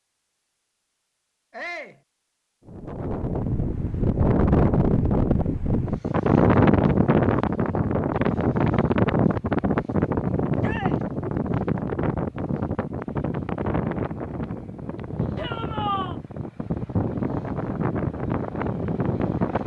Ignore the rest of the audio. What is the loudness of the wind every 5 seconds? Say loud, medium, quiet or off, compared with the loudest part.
loud, loud, medium, medium.